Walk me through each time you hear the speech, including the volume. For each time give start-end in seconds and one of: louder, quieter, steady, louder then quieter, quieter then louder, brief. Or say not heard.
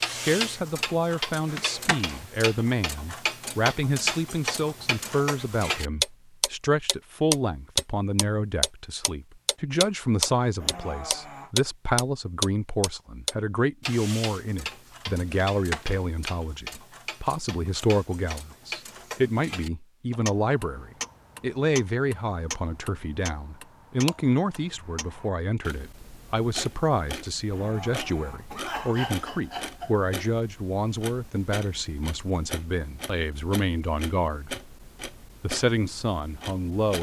0.1-34.5 steady
35.4-36.9 brief.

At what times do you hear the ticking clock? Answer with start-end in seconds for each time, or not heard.
0.0-36.9.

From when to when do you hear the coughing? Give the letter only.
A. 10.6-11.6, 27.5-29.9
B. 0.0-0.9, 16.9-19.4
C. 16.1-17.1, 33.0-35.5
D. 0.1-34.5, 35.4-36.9
A.